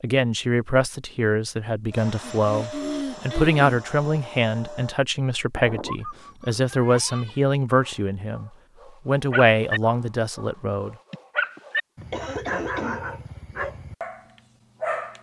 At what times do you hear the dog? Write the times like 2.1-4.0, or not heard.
5.5-15.1.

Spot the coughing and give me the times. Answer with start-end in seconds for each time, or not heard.
2.2-3.8, 11.1-13.0.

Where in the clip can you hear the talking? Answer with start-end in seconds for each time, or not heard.
0.0-10.9.